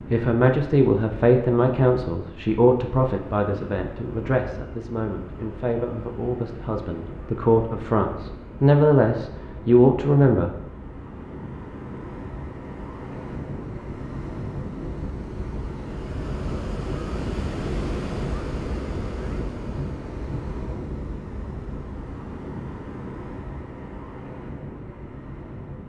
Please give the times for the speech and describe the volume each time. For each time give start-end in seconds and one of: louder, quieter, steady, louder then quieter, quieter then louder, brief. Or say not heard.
0.1-10.5 quieter then louder.